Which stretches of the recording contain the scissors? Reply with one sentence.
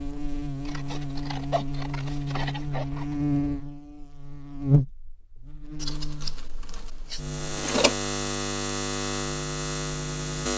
The scissors can be heard from 0.6 to 3.2 s and from 5.8 to 8.0 s.